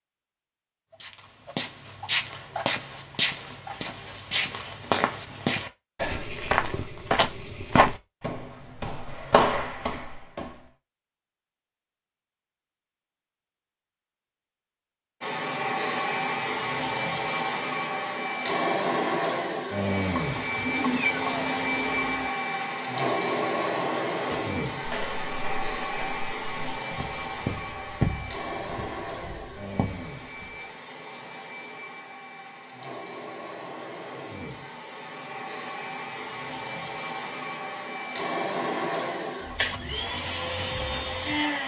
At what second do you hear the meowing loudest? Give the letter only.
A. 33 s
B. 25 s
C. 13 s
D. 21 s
D.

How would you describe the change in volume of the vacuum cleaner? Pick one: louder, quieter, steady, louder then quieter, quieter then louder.
quieter then louder.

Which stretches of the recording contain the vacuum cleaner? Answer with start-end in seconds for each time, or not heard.
15.2-41.6.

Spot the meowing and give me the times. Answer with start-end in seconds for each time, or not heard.
20.4-22.3.